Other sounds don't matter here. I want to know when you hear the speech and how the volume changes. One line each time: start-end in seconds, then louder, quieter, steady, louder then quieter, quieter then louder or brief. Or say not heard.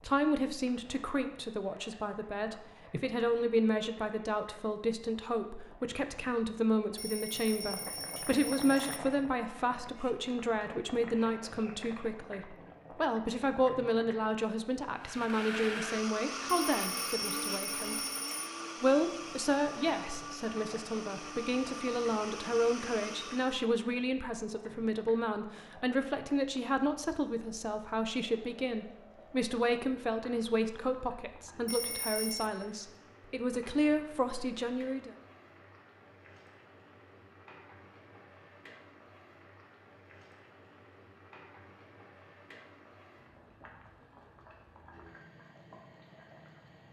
0.0-18.0 steady
18.8-35.1 steady.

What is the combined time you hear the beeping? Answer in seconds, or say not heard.
5 s.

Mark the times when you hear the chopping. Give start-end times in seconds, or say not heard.
not heard.